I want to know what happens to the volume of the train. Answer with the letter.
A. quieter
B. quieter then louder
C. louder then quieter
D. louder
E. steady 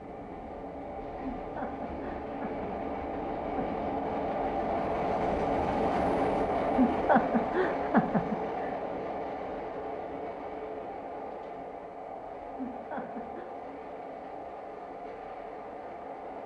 C.